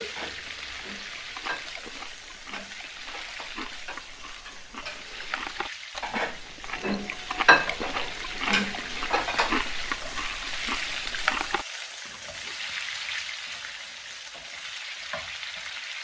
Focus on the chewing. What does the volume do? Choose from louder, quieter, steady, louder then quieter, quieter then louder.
louder.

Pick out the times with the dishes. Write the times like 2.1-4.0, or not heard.
0.1-9.6.